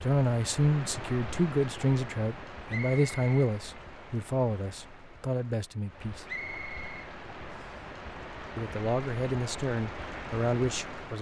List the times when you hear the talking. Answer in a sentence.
The talking can be heard from 0.0 to 6.2 s and from 8.6 to 11.1 s.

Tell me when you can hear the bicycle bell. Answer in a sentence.
You can't hear the bicycle bell here.